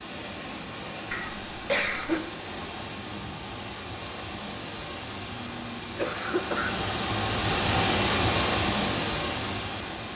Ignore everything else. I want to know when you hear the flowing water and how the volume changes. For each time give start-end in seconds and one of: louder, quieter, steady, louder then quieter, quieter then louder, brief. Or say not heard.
0.0-10.1 louder.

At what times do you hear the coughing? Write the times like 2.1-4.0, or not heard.
1.1-2.2, 5.3-7.0.